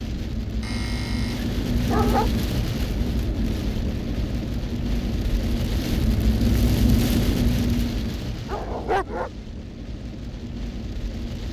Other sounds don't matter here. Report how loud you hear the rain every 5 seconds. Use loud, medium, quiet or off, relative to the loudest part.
loud, loud, medium.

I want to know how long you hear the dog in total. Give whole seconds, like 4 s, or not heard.
3 s.